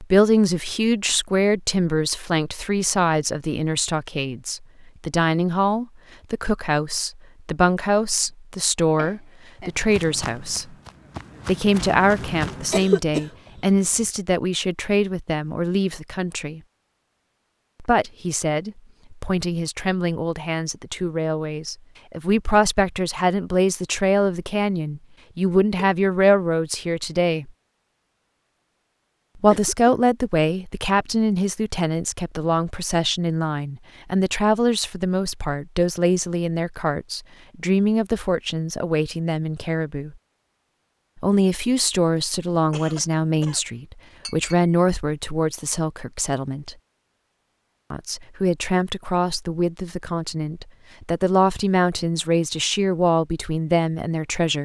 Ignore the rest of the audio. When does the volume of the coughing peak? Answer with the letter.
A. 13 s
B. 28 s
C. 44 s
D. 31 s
A.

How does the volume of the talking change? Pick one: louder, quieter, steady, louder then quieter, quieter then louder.
steady.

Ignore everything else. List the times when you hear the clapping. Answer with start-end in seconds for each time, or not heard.
not heard.